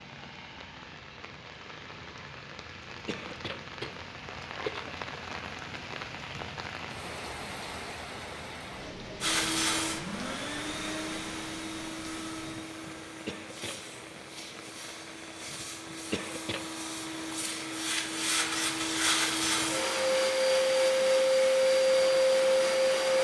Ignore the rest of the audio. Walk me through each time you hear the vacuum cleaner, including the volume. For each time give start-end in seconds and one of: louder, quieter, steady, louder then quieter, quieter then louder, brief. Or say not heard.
9.2-23.1 quieter then louder.